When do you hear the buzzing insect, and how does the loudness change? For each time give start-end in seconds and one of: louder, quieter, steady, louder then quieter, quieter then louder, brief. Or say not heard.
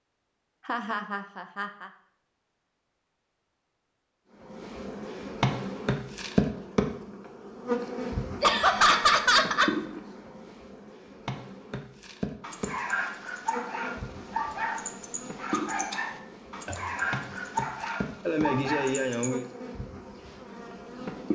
4.5-21.3 quieter.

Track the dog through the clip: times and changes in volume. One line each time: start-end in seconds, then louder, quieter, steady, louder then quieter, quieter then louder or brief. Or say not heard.
12.4-19.3 steady.